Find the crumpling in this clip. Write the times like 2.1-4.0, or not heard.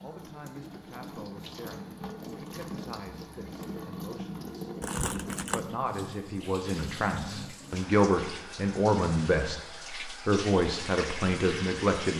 4.8-5.6.